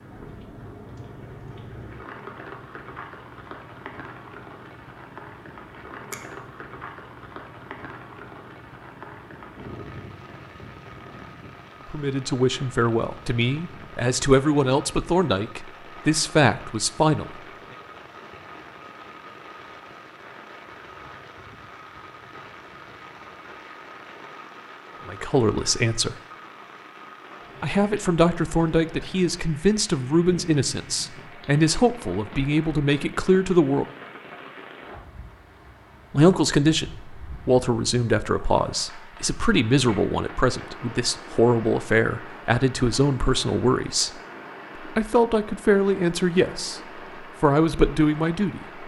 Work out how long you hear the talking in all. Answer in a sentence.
You can hear the talking for 25 seconds altogether.